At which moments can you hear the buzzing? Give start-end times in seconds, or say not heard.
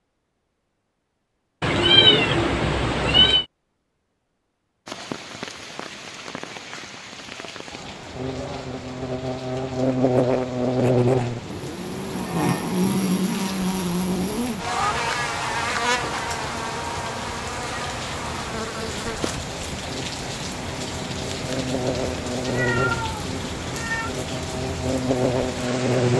8.2-26.1.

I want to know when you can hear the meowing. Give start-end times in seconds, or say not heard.
1.6-3.5, 14.7-15.1, 22.4-24.1.